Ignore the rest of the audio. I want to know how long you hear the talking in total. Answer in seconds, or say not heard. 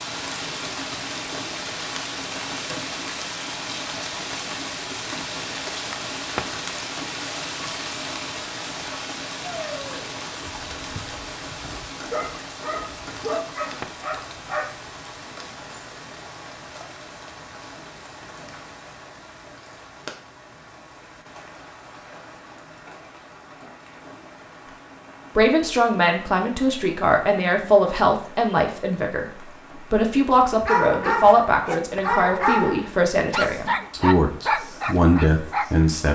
11 s.